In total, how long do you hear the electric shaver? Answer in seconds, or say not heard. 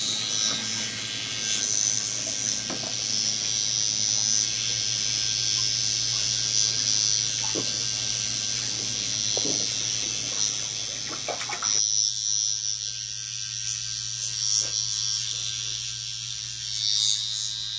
18 s.